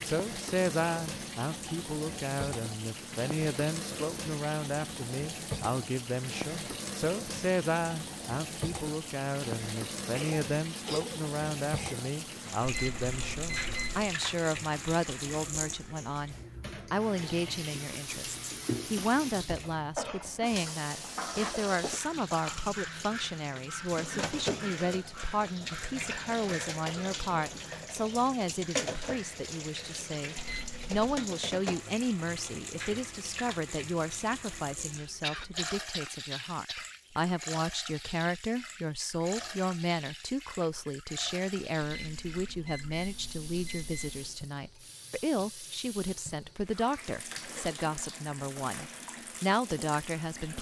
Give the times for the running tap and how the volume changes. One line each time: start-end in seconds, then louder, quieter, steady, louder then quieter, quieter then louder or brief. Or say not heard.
0.0-50.5 quieter.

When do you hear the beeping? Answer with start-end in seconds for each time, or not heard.
12.7-14.1, 30.4-31.1, 41.8-44.4.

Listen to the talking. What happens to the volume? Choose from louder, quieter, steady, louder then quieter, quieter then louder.
steady.